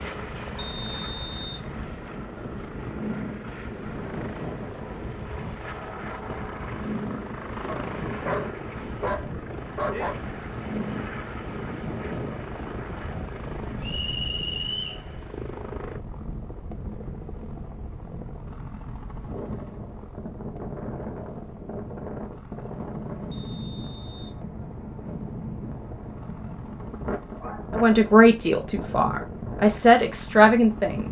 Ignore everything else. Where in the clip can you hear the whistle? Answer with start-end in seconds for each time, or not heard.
0.6-1.7, 13.8-15.1, 23.3-24.4.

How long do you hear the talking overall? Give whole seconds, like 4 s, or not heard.
3 s.